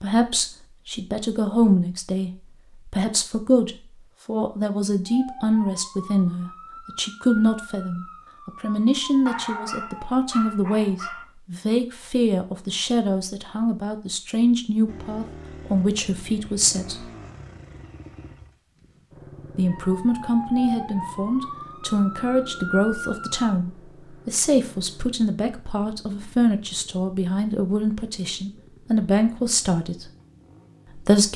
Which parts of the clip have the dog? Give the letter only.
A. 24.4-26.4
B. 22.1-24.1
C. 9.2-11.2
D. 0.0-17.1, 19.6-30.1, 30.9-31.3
C.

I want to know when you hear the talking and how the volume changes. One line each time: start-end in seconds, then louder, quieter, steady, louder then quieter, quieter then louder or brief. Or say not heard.
0.0-17.1 steady
19.6-30.1 steady
30.9-31.3 brief.